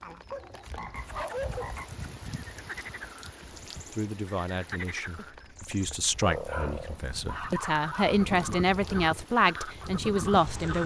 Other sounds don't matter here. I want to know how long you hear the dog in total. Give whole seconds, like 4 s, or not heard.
4 s.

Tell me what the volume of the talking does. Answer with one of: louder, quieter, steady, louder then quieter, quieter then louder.
louder.